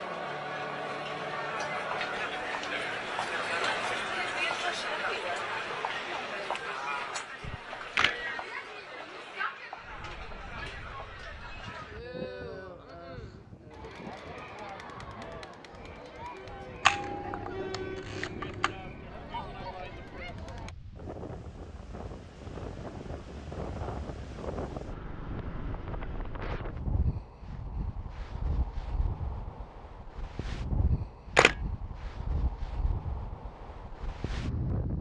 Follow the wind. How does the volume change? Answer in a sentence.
The loudness of the wind goes up.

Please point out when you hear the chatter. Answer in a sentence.
You can hear the chatter from 0.0 to 20.8 s.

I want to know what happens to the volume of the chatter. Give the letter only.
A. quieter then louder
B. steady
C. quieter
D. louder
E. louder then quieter
C.